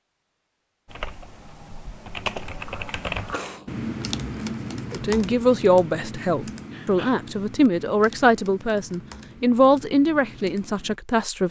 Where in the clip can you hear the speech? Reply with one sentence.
The speech can be heard from 4.9 to 11.4 s.